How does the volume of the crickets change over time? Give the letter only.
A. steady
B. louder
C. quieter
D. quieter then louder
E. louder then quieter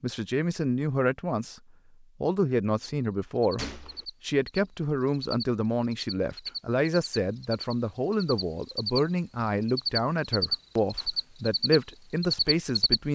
B.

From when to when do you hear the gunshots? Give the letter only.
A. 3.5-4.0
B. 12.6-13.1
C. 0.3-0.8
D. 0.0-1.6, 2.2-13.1
A.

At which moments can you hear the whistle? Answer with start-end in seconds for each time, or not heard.
not heard.